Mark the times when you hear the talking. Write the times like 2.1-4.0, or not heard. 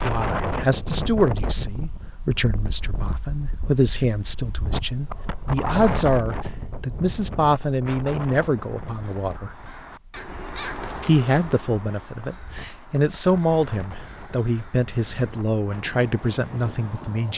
0.0-9.6, 11.1-17.3.